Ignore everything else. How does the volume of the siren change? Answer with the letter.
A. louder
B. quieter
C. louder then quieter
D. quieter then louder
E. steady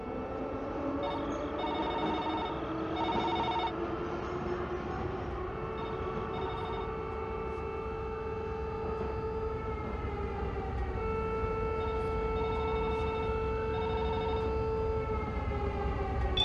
A.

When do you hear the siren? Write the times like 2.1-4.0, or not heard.
0.0-16.3.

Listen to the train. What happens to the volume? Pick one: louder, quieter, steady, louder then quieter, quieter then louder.
quieter.